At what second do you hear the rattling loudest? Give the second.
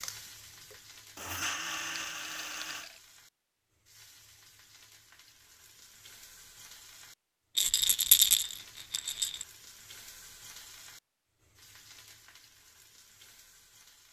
8 s.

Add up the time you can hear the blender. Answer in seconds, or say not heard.
3 s.